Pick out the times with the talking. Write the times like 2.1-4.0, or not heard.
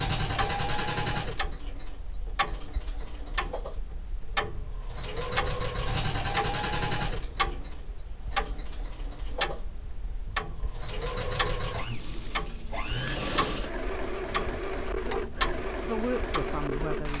15.8-17.1.